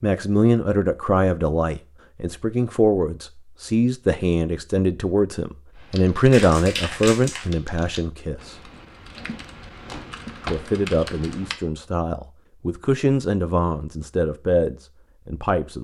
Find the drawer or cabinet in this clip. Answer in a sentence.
The drawer or cabinet can be heard from 9.1 to 10.7 s.